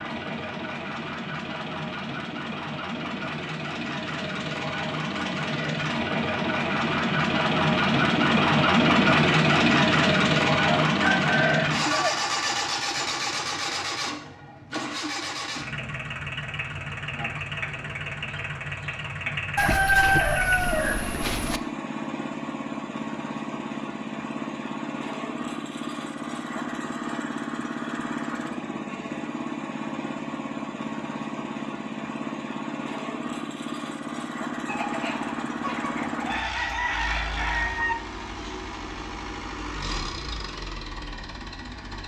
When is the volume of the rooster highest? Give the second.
20 s.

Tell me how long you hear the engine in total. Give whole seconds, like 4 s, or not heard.
42 s.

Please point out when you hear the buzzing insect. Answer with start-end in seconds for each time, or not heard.
not heard.